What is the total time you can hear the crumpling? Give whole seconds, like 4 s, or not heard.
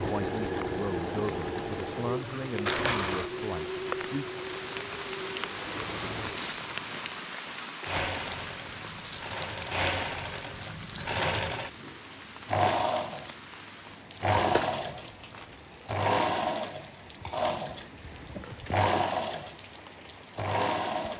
4 s.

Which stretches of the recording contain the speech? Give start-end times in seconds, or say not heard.
0.0-4.4.